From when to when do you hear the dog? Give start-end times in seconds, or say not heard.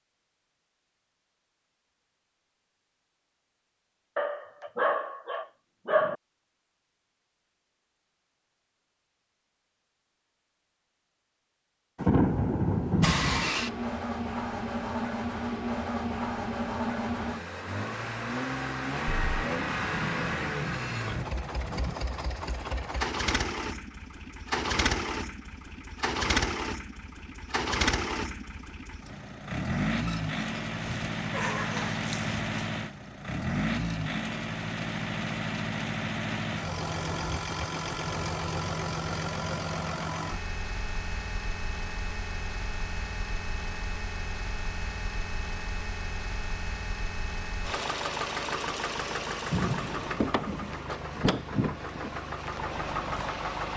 4.2-6.2, 30.1-32.6.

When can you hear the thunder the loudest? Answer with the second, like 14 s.
12 s.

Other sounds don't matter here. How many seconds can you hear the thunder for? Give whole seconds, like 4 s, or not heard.
6 s.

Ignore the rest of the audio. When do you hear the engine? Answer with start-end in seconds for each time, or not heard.
12.8-53.7.